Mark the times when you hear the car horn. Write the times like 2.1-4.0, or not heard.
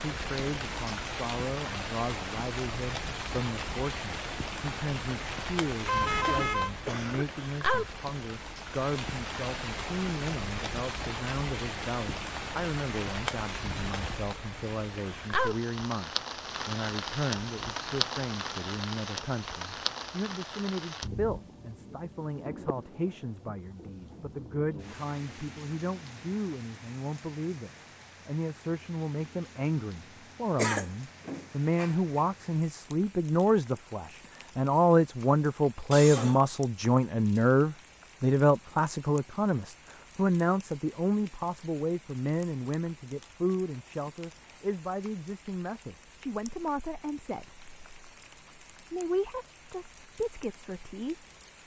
5.8-6.7.